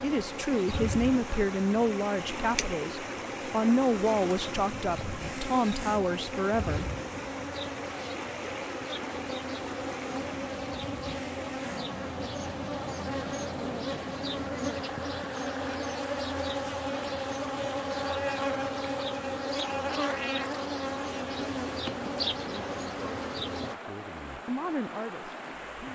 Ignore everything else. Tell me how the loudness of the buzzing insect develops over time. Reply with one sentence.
The volume of the buzzing insect goes up.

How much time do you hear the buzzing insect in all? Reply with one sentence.
You can hear the buzzing insect for 24 seconds altogether.